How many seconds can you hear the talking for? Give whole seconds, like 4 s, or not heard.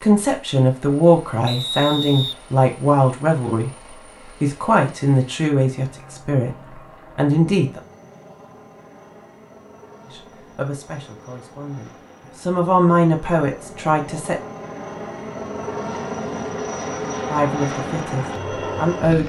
13 s.